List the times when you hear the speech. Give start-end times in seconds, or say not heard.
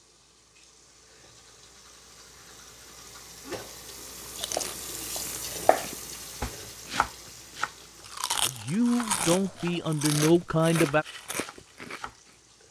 8.4-11.1.